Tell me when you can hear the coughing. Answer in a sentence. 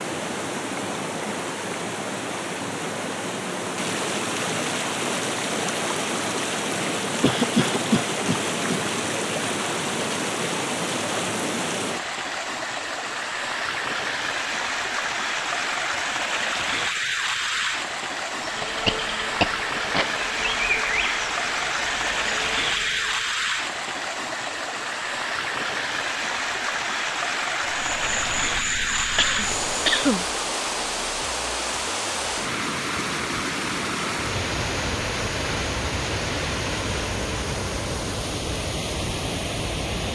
You can hear the coughing from 7.2 to 8.8 s, from 18.6 to 20.1 s and from 29.1 to 30.2 s.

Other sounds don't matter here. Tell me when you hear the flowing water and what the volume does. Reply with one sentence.
You can hear the flowing water from 0.0 to 40.1 s, at a steady volume.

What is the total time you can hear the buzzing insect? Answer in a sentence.
The buzzing insect can be heard for 7 seconds in total.